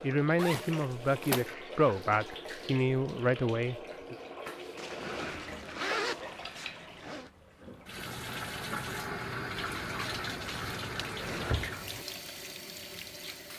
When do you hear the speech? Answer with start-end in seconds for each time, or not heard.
0.0-4.2.